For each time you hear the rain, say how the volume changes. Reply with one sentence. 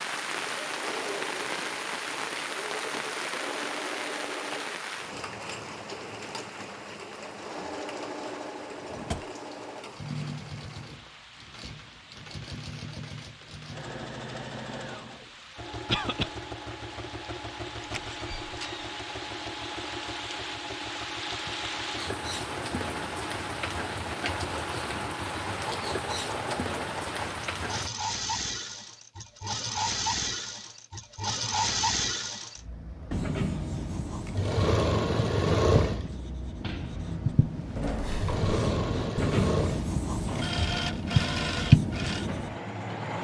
The rain can be heard from 0.0 to 27.9 s, getting quieter then louder.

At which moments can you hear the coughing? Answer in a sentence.
You can hear the coughing from 15.8 to 16.3 s.